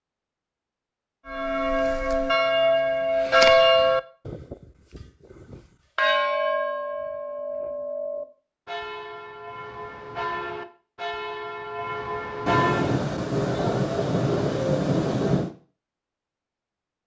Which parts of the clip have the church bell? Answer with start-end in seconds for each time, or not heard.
1.2-12.9.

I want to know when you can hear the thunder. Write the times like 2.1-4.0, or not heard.
12.4-15.5.